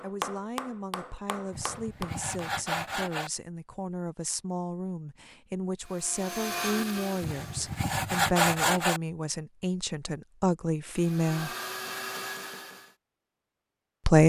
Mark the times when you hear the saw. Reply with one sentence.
The saw can be heard from 1.5 to 3.3 s and from 7.2 to 9.0 s.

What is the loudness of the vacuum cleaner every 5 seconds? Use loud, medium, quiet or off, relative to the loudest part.
off, loud, loud.